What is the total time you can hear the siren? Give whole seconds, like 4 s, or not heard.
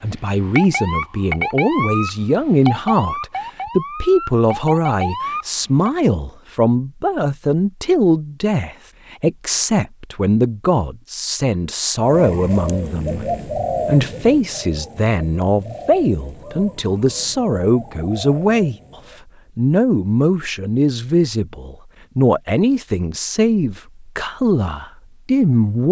6 s.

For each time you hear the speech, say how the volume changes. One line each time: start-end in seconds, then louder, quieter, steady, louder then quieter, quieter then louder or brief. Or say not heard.
0.0-18.8 steady
19.6-25.8 steady.